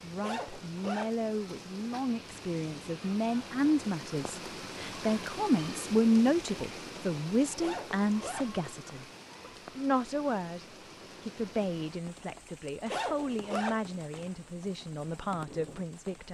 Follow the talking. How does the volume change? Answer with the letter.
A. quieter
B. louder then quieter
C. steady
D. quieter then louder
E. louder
B.